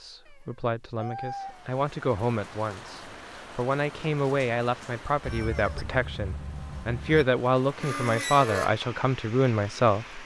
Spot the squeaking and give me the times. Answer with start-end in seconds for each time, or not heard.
7.8-8.8.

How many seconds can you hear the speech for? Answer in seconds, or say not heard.
10 s.